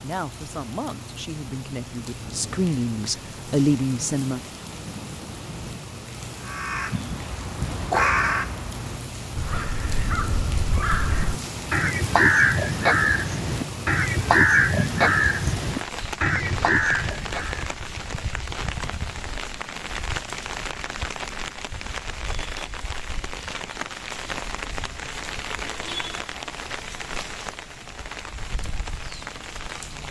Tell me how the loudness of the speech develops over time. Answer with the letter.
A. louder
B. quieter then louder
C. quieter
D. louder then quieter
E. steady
A.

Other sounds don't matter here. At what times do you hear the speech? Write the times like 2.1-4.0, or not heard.
0.0-4.5.